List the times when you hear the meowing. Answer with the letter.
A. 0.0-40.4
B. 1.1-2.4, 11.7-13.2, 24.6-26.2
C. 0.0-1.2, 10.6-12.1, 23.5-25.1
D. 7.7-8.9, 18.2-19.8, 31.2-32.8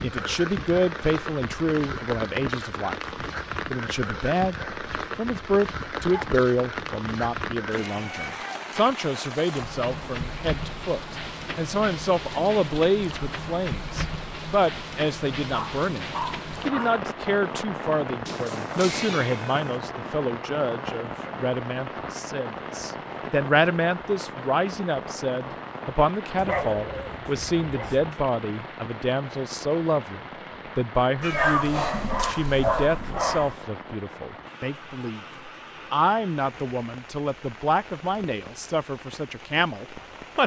D.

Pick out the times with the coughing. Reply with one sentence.
The coughing can't be heard in this clip.